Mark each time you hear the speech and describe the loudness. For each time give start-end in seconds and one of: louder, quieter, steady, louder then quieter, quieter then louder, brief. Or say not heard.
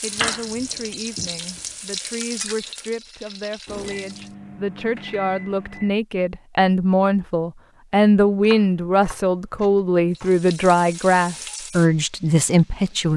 0.0-13.1 louder.